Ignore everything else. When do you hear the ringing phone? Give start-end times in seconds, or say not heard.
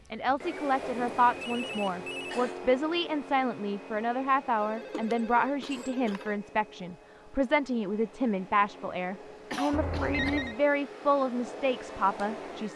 1.2-2.4, 4.5-6.4, 9.7-10.6.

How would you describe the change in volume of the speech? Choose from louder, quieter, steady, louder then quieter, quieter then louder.
steady.